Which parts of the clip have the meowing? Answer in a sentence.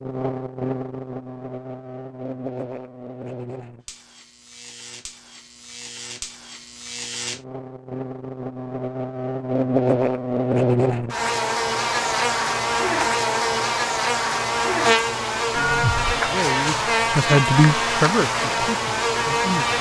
The meowing can be heard from 15.5 to 16.3 s.